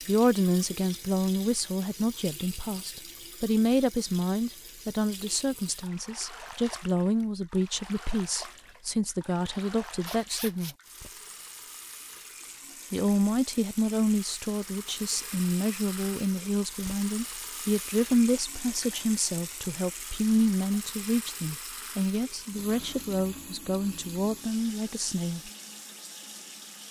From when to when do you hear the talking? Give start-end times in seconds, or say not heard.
0.1-10.8, 12.9-25.5.